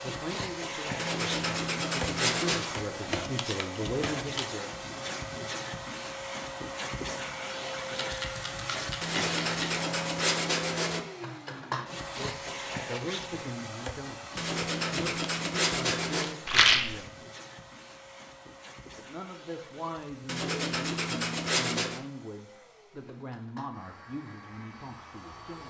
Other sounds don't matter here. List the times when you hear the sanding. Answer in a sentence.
The sanding can be heard from 0.9 to 2.6 s, from 9.0 to 11.0 s, from 14.3 to 16.4 s and from 20.2 to 22.0 s.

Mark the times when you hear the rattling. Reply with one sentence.
You can hear the rattling from 7.8 to 9.8 s and from 16.4 to 16.9 s.